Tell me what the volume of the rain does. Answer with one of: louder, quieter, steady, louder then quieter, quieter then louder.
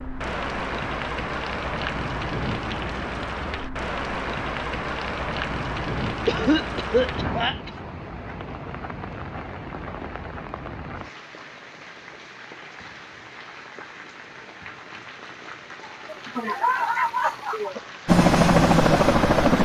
quieter.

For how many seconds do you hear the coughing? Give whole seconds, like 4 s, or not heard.
3 s.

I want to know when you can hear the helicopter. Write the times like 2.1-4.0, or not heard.
18.1-19.5.